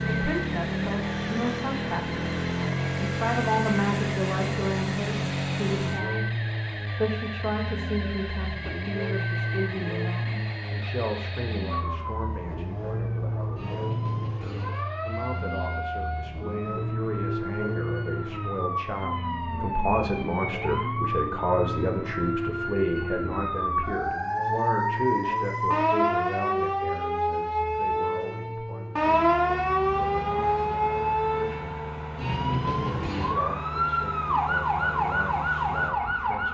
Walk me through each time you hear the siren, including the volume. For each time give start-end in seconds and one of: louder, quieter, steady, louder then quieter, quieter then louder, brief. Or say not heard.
0.0-36.4 louder.